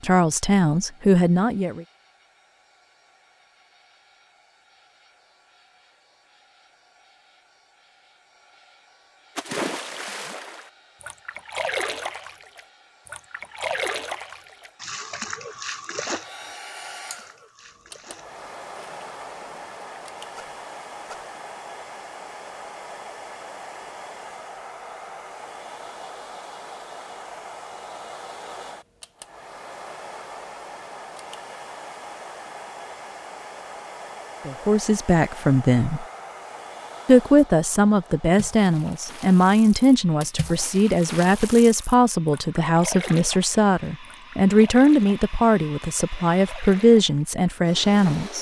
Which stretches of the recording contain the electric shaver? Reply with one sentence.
The electric shaver can't be heard in this clip.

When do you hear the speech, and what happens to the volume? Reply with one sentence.
You can hear the speech briefly from 0.0 to 1.9 s; briefly from 34.5 to 36.0 s; and from 37.0 to 48.3 s, at a steady volume.